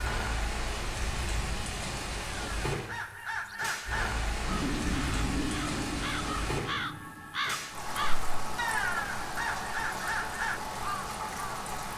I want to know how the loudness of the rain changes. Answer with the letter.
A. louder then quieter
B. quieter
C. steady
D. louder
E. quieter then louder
C.